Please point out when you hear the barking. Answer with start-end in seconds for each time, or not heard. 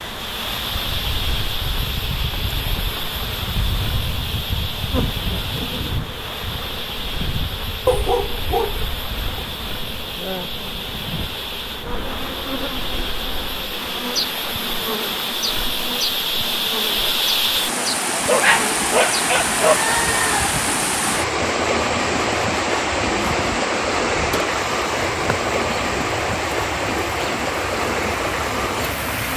7.8-9.4, 18.2-19.9.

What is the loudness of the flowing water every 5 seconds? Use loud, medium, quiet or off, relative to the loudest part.
medium, medium, medium, loud, loud, loud.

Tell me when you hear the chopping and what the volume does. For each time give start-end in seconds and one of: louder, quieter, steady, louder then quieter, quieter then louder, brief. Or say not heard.
not heard.